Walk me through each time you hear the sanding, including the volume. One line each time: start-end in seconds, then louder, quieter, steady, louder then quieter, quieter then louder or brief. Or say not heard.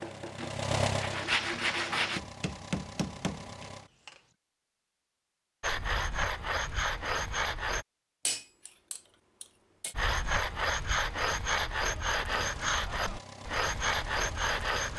0.0-2.2 brief
5.6-7.8 brief
9.9-14.9 steady.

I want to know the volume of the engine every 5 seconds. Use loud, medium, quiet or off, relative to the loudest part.
loud, off, medium.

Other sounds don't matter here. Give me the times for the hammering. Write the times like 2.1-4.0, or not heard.
2.1-4.2, 8.2-9.9.